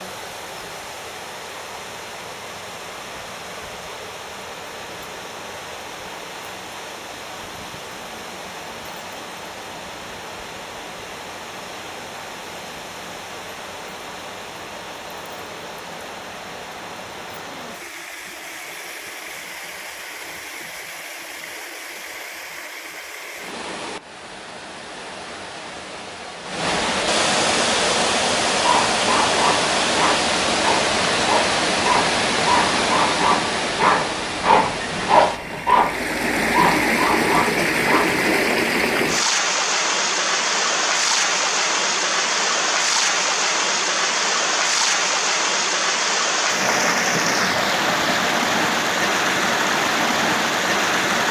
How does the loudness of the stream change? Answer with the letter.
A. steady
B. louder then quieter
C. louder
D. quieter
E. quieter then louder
C.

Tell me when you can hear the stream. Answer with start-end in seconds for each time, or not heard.
0.0-51.2.